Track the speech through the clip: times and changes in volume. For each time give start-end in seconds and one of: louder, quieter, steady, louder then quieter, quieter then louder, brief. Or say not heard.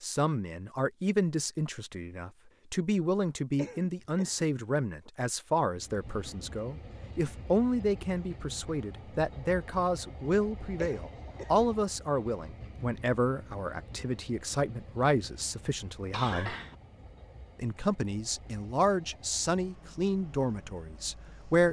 0.0-16.6 steady
17.6-21.6 louder then quieter.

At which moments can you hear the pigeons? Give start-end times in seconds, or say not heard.
not heard.